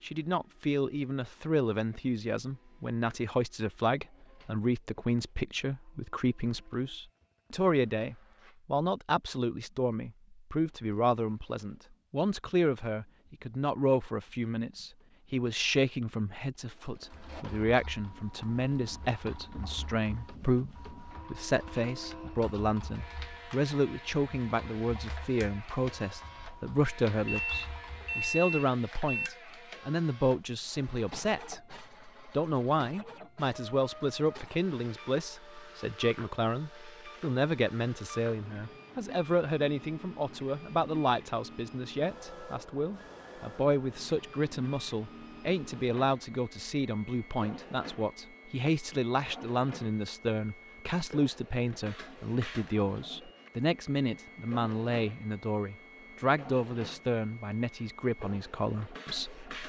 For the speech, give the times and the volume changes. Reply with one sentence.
The speech can be heard from 0.0 to 31.6 s, at a steady volume; and from 32.3 to 59.6 s, at a steady volume.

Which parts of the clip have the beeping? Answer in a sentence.
You can hear the beeping from 27.2 to 29.3 s.